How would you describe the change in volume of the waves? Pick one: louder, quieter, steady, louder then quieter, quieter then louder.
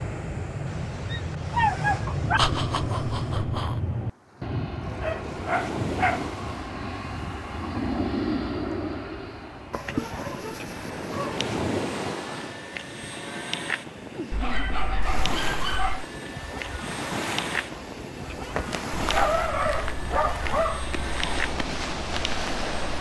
louder.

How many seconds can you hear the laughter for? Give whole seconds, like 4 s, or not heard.
2 s.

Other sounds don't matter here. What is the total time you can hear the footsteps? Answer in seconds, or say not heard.
4 s.